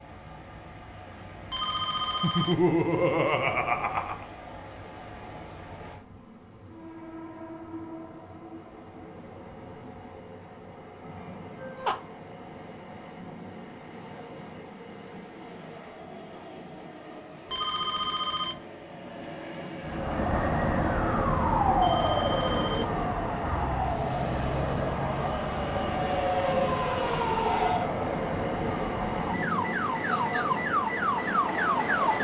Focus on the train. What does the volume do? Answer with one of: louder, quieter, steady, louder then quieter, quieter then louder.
louder.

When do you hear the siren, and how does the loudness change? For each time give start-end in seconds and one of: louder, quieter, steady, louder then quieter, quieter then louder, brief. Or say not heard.
19.8-32.1 quieter then louder.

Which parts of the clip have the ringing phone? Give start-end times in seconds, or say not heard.
1.5-2.6, 17.5-18.6, 21.8-22.9.